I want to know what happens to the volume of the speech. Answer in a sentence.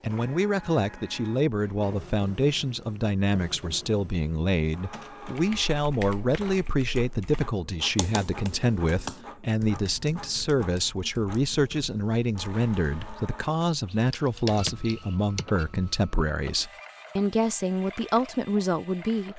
The volume of the speech stays about the same.